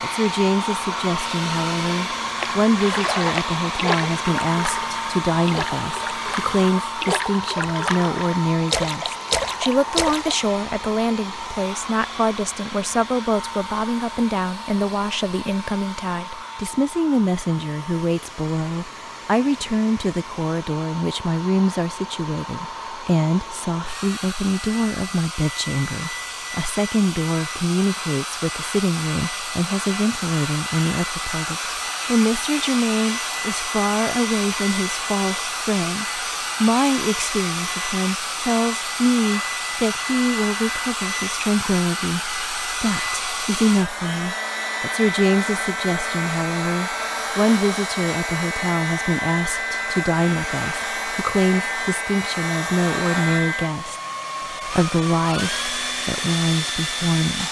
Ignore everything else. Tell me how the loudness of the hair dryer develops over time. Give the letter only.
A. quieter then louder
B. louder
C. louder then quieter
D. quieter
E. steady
A.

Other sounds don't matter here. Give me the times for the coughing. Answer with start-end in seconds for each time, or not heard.
not heard.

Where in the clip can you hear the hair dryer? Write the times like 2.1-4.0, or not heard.
0.0-57.4.